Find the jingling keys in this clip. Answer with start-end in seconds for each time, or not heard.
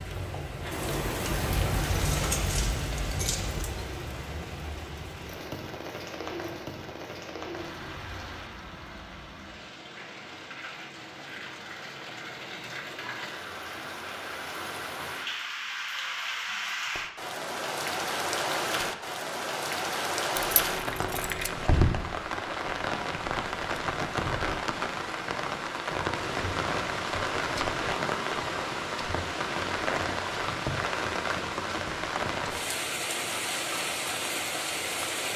1.4-3.6, 20.4-21.5.